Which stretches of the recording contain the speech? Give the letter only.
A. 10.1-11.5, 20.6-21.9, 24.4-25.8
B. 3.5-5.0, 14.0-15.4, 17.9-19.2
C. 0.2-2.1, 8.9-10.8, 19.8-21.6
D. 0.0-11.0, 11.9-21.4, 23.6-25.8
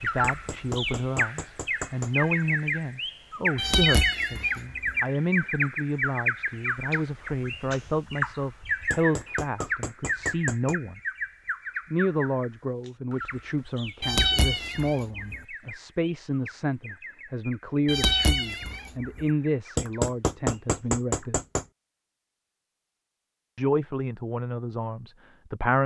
D.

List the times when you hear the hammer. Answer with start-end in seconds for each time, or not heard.
0.2-2.1, 8.9-10.8, 19.8-21.6.